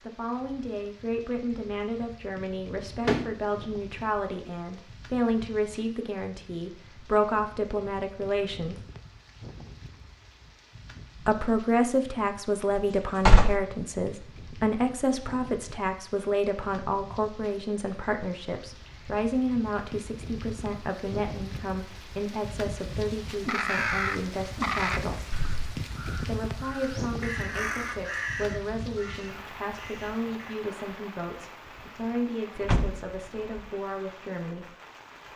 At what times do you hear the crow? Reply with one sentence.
You can hear the crow from 23.4 to 30.6 s.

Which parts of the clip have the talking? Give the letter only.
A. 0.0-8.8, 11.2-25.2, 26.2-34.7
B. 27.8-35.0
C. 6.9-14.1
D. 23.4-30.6
A.